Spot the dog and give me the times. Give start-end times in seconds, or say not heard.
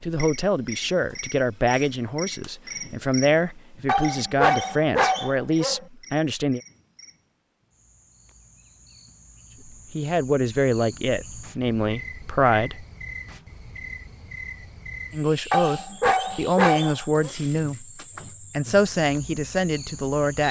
3.9-5.8, 15.5-17.3.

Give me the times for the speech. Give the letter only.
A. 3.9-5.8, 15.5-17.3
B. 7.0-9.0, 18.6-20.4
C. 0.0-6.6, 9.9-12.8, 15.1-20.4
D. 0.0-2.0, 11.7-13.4
C.